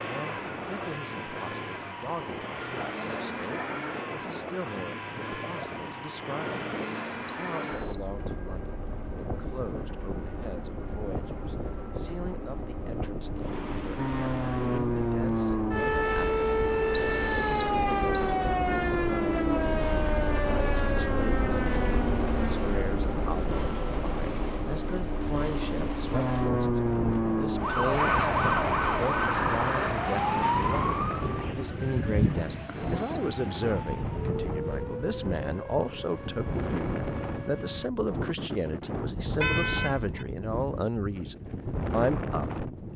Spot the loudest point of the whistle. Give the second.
17 s.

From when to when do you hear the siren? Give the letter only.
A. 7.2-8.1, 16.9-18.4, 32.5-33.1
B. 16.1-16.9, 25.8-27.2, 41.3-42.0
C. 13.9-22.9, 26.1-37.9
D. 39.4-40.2
C.